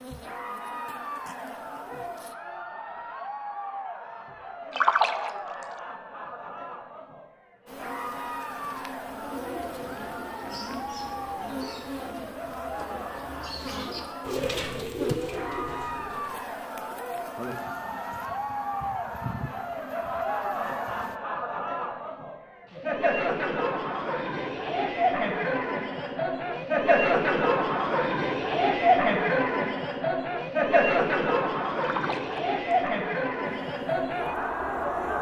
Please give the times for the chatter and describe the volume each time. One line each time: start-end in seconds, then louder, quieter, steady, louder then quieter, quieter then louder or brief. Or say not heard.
0.1-35.1 louder.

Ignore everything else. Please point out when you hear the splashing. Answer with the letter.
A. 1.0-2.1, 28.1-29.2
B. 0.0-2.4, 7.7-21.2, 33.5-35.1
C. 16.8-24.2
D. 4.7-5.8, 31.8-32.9
D.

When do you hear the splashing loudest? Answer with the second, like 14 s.
5 s.